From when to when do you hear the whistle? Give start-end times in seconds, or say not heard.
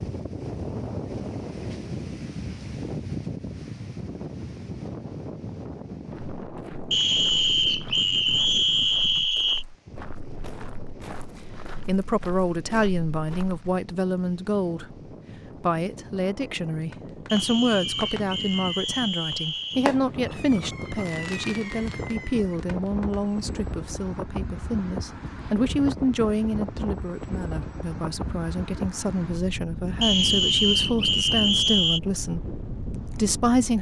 6.9-9.7, 17.2-19.9, 30.0-32.0.